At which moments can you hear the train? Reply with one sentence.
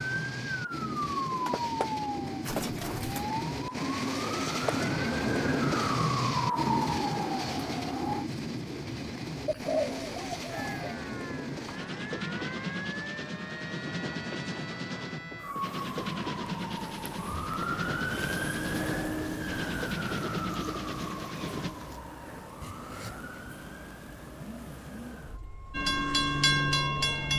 The train can be heard from 0.0 to 21.7 s and from 25.7 to 27.3 s.